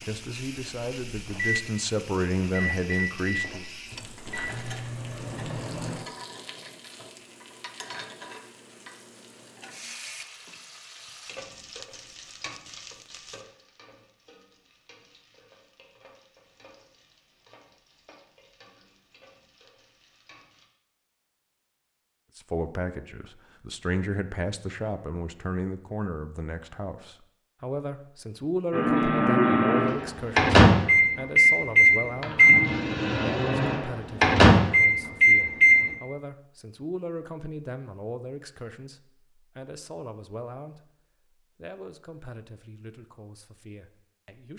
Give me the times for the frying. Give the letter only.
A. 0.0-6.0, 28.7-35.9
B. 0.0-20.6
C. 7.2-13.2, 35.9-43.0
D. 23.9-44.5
B.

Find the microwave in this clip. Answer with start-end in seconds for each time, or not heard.
0.0-6.0, 28.7-35.9.